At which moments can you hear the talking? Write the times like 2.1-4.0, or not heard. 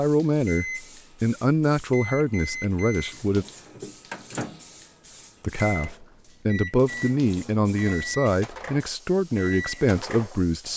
0.0-3.5, 5.4-10.7.